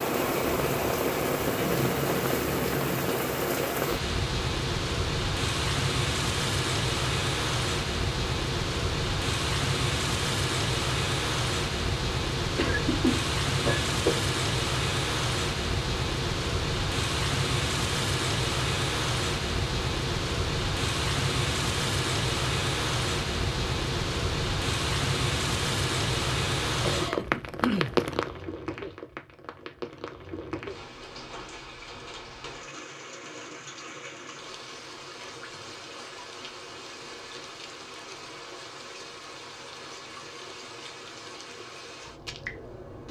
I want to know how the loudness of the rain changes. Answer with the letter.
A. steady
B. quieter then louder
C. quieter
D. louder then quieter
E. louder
C.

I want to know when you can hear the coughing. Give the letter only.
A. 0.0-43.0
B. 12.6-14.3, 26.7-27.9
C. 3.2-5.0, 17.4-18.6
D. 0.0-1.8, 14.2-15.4
B.